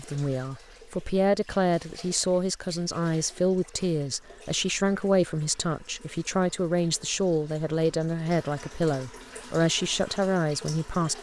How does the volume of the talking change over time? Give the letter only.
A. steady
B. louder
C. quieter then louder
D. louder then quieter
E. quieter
A.